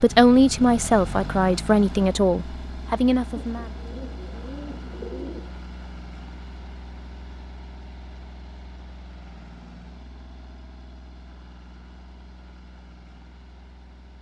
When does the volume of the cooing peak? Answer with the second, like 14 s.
5 s.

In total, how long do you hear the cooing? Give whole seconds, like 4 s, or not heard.
2 s.